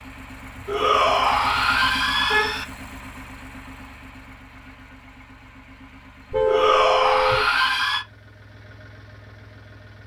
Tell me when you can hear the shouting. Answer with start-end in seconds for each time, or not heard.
0.7-2.6, 6.5-8.1.